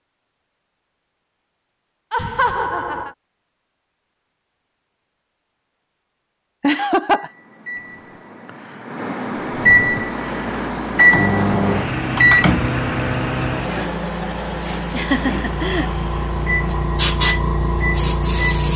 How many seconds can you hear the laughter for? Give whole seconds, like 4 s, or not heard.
3 s.